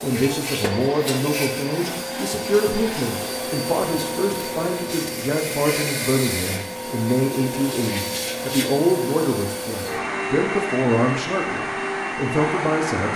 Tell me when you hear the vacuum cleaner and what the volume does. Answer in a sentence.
You can hear the vacuum cleaner from 0.0 to 13.1 s, at a steady volume.